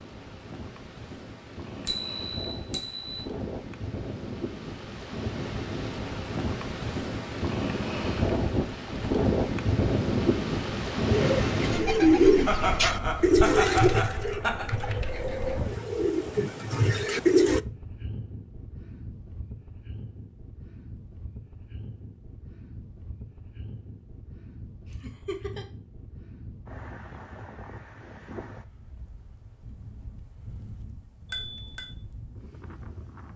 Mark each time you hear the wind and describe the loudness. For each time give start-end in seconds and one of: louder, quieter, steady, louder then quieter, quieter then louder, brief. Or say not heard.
0.0-33.3 louder then quieter.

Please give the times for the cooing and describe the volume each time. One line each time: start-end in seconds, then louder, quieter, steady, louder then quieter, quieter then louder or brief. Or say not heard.
11.1-17.6 quieter then louder.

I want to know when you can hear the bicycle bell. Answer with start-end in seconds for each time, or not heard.
1.9-3.2, 31.3-31.9.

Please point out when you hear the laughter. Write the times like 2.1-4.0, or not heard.
12.4-14.7, 24.9-25.6.